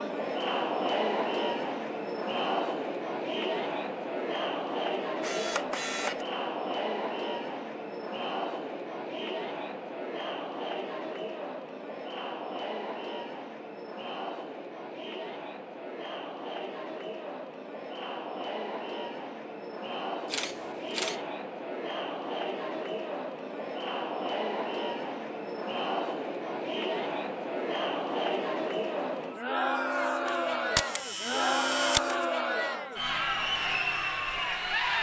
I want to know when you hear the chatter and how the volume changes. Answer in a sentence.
You can hear the chatter from 0.0 to 34.9 s, getting quieter then louder.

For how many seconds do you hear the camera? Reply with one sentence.
You can hear the camera for 4 seconds altogether.